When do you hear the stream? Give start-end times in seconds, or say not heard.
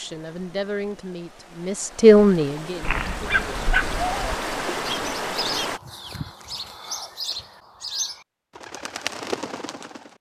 0.0-5.8.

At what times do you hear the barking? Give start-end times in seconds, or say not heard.
2.8-4.3.